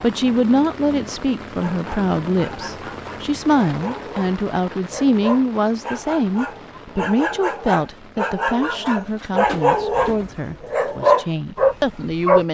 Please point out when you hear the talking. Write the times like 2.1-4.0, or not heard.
0.0-12.5.